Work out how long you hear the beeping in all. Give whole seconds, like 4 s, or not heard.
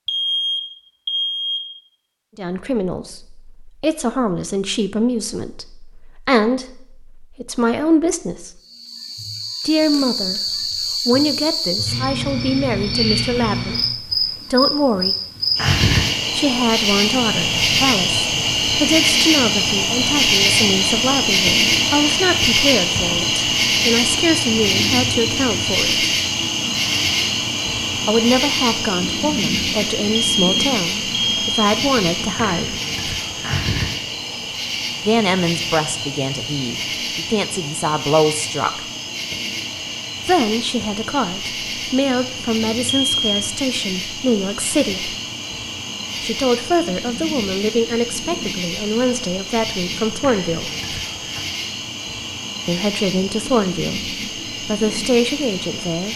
4 s.